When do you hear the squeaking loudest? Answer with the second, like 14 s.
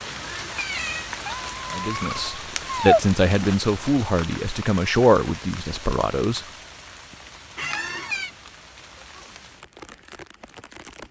3 s.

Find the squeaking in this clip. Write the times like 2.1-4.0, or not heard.
1.2-3.0, 7.5-8.1.